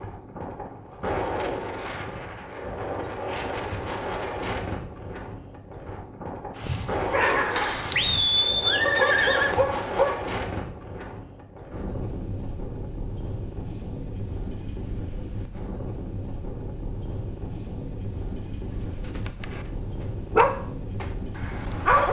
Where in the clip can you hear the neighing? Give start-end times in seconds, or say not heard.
8.0-9.6.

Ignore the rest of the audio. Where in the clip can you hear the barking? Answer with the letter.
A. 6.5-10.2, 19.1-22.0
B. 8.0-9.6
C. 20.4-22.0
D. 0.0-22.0
A.